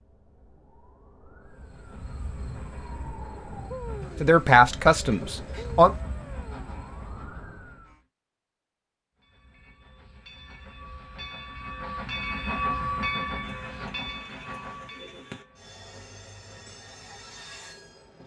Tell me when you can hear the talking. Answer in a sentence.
You can hear the talking from 4.2 to 5.9 s.